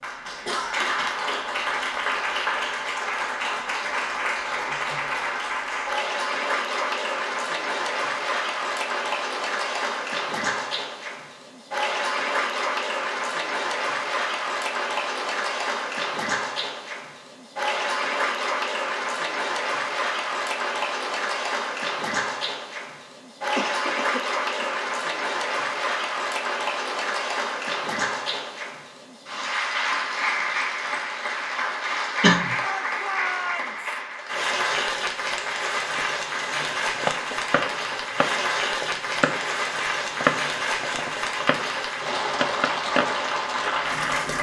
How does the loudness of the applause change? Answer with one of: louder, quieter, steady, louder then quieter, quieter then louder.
steady.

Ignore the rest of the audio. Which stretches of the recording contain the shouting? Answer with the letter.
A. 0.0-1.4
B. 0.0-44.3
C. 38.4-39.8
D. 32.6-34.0
D.